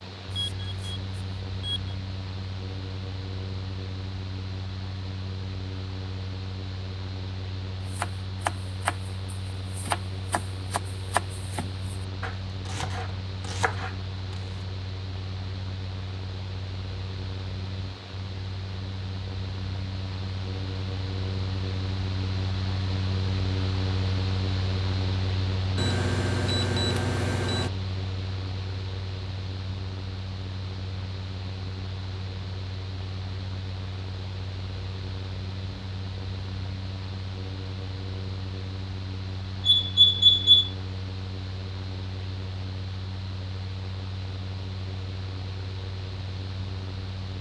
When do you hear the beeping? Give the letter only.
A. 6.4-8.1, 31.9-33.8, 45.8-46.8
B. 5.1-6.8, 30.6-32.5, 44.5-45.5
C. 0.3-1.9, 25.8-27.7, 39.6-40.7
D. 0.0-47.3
C.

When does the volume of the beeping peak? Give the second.
40 s.